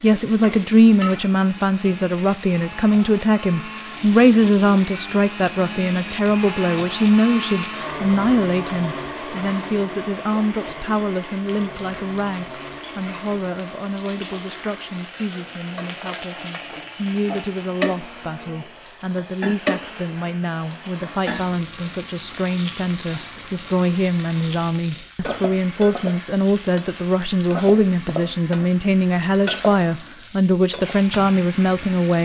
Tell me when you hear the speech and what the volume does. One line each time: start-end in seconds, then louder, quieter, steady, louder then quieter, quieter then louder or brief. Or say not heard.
0.0-32.1 quieter then louder.